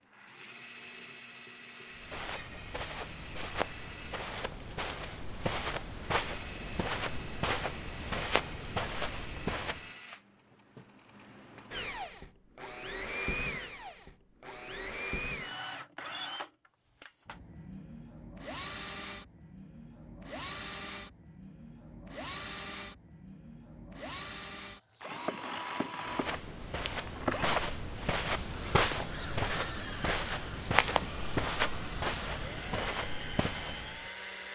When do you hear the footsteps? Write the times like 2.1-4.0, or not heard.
1.9-9.9, 26.1-34.1.